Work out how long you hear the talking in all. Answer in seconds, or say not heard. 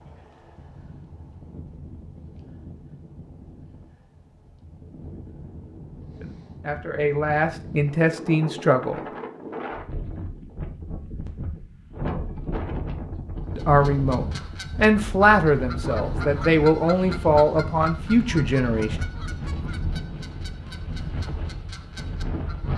8 s.